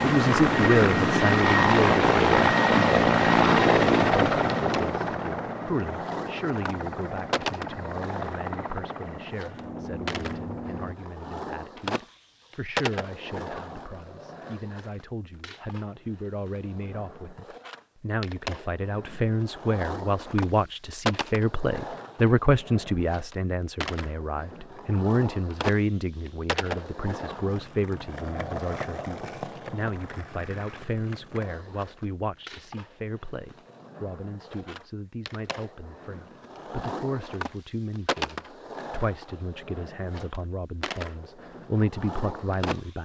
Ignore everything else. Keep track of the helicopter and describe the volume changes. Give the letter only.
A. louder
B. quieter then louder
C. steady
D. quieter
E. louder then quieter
D.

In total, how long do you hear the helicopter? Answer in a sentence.
You can hear the helicopter for 11 seconds altogether.